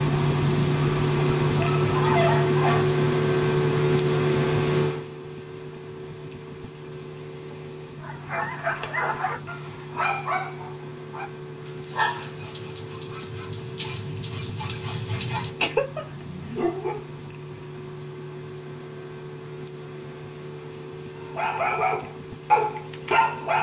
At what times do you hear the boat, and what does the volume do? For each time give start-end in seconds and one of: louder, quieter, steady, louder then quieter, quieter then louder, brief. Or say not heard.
0.0-23.5 quieter.